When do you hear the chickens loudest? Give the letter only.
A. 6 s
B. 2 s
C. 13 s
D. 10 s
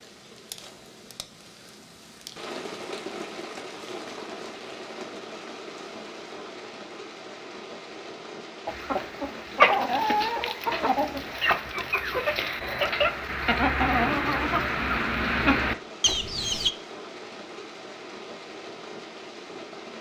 D.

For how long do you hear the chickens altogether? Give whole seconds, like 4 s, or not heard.
8 s.